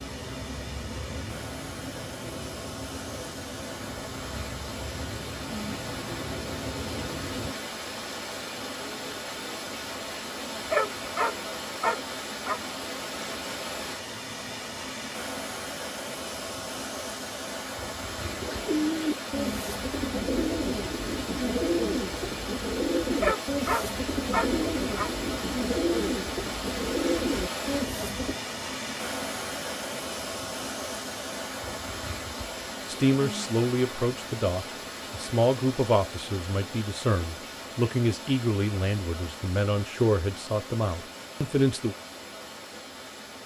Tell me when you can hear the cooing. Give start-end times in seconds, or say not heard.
18.1-28.4.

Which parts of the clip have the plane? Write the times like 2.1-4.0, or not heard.
0.0-7.5.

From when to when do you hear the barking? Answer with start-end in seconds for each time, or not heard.
10.5-12.6, 23.0-25.1.